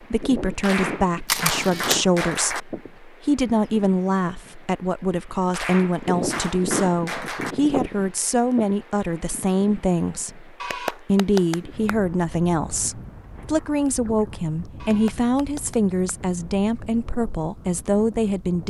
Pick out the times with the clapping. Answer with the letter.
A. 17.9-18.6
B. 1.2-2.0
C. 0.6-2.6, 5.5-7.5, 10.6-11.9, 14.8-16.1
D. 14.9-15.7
C.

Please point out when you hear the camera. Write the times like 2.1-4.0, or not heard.
1.2-2.0.